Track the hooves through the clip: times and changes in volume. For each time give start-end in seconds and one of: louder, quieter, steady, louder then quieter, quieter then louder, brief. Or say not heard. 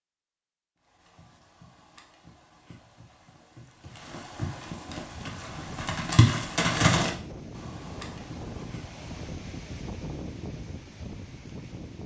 1.1-9.2 louder then quieter.